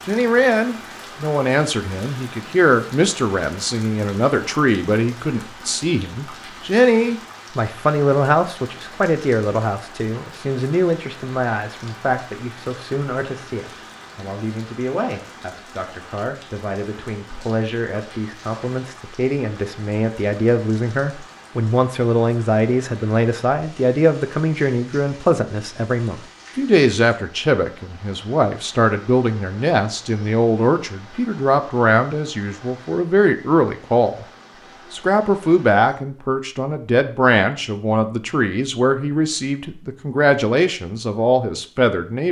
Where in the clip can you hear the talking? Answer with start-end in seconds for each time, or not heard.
0.1-34.2, 34.9-42.2.